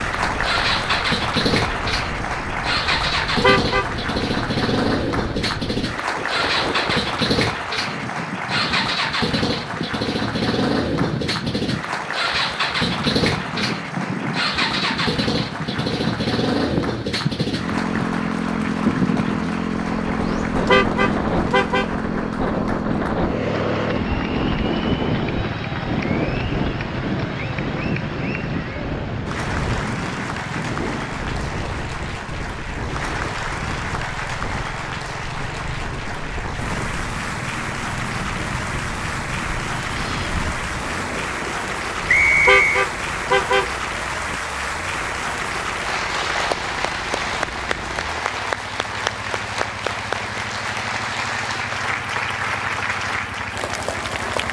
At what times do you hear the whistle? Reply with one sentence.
You can hear the whistle from 42.0 to 42.9 s.